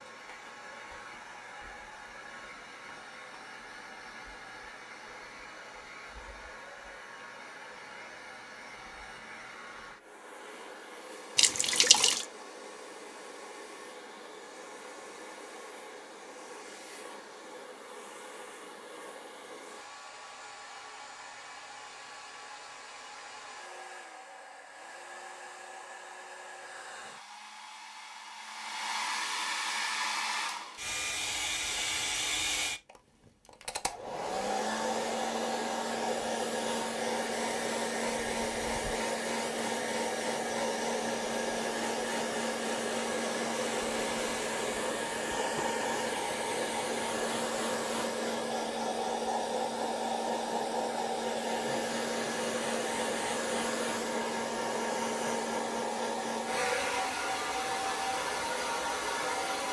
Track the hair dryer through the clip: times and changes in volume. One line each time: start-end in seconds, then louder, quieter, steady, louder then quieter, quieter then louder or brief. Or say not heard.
0.0-59.6 louder.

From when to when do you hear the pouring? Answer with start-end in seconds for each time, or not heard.
11.3-12.2.